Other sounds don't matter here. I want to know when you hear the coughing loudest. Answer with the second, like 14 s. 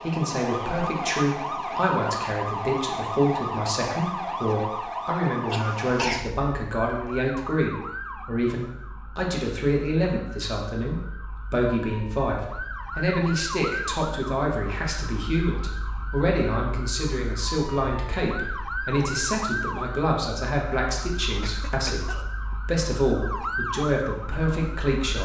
6 s.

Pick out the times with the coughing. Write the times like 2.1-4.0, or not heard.
5.5-6.3, 21.4-22.6.